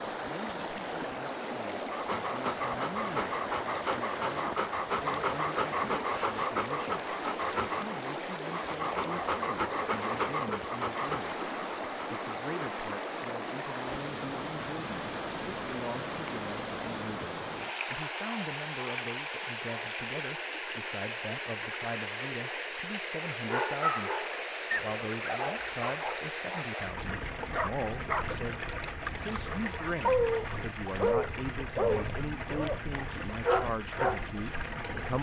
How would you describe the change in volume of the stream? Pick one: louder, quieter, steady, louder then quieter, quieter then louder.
steady.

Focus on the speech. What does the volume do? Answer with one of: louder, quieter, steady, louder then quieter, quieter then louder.
louder.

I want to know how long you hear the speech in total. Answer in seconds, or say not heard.
35 s.